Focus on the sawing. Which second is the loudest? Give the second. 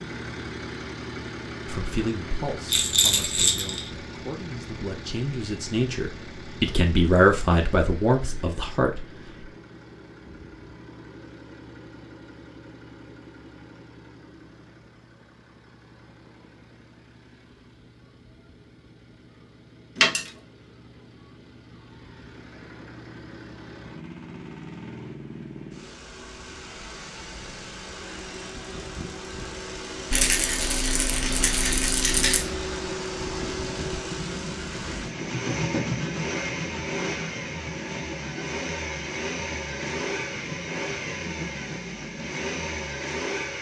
36 s.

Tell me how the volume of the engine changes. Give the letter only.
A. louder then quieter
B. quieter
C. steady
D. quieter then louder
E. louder
D.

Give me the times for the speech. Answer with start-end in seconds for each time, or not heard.
1.6-9.4.